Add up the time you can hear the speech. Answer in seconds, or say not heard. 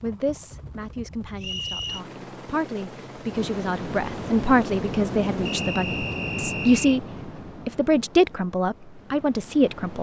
9 s.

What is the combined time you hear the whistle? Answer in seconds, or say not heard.
2 s.